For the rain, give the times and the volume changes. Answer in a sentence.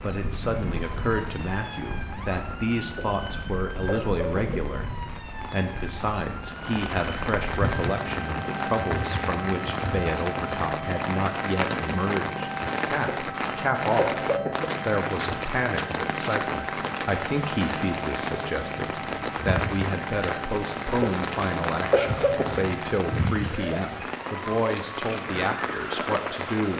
The rain can be heard from 0.0 to 26.7 s, getting louder.